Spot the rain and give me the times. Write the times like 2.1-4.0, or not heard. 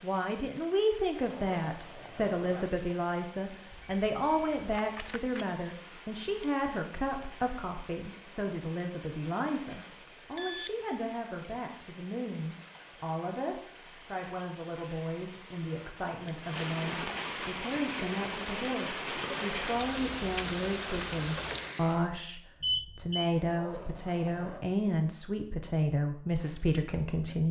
0.0-22.1.